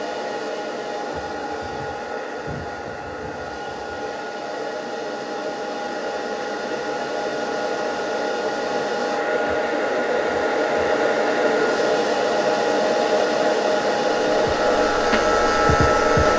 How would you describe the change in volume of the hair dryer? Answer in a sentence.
The volume of the hair dryer goes up.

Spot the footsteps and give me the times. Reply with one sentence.
You can't hear the footsteps here.